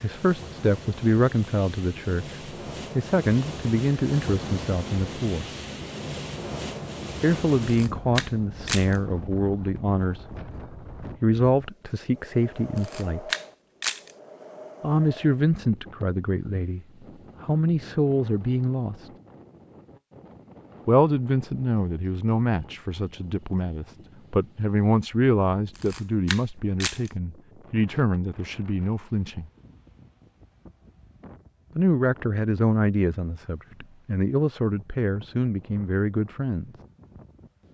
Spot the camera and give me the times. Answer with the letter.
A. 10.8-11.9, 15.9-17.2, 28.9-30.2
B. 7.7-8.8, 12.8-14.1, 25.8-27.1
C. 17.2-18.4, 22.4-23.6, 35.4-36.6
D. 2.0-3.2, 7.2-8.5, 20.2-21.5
B.